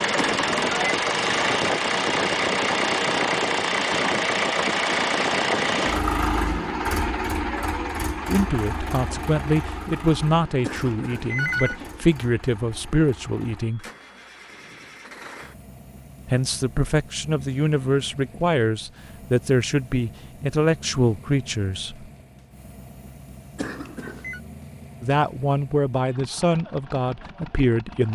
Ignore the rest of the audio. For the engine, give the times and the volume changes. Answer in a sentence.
You can hear the engine from 0.0 to 28.1 s, getting quieter.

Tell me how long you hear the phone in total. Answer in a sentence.
You can hear the phone for 3 seconds altogether.